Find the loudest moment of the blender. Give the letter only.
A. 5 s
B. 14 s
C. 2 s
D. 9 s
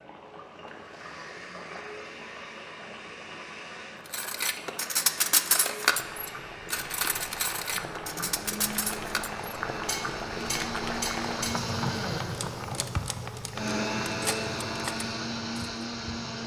B.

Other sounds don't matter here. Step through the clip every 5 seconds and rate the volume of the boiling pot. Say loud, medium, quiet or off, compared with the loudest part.
medium, loud, loud, medium.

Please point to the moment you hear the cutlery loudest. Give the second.
5 s.